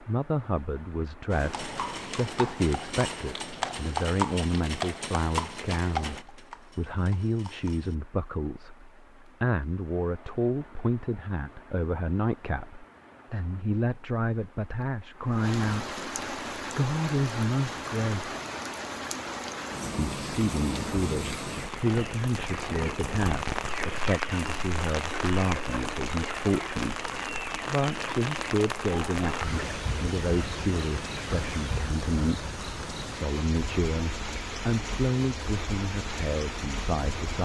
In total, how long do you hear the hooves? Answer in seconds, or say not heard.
7 s.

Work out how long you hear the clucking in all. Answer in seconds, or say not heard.
10 s.